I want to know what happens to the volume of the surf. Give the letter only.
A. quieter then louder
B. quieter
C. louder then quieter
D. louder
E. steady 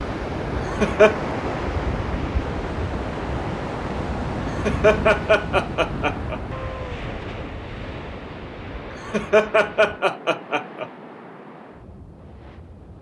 B.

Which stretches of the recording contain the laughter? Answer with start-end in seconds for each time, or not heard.
0.7-1.1, 4.5-6.4, 9.1-10.8.